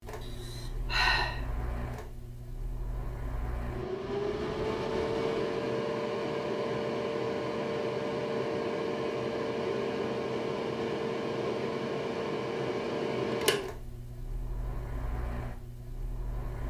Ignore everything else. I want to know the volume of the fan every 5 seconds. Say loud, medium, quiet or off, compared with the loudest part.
medium, loud, loud, medium.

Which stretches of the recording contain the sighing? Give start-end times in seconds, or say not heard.
0.2-1.4.